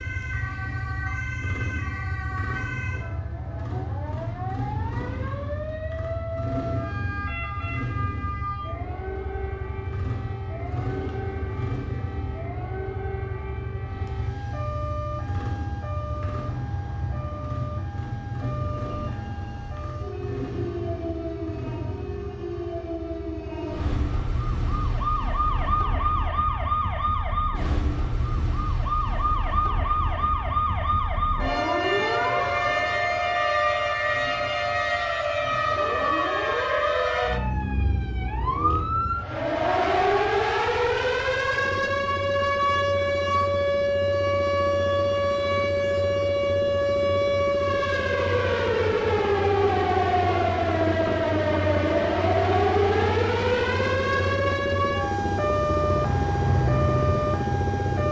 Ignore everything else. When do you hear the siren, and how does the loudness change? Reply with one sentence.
You can hear the siren from 0.0 to 58.0 s, getting louder.